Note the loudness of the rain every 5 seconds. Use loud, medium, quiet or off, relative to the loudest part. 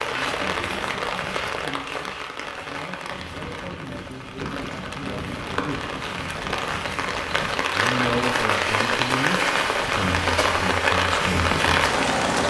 medium, loud, loud.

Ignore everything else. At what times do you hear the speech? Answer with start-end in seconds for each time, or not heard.
0.0-6.0, 7.7-11.5.